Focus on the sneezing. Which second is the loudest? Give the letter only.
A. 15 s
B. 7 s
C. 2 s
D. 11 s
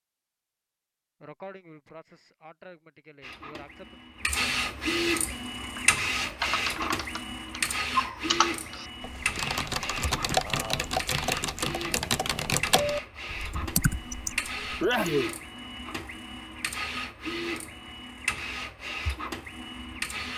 A.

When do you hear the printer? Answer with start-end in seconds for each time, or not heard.
3.2-20.3.